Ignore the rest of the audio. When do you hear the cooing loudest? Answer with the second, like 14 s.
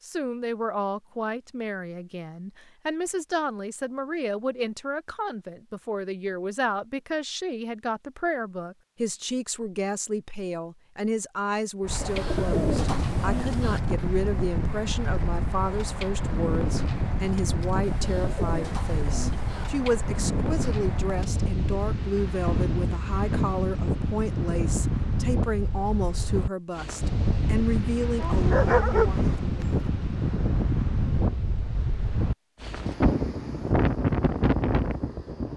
13 s.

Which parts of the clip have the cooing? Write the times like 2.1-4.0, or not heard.
11.9-13.8, 17.9-19.6.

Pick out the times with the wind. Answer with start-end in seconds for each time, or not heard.
11.8-35.5.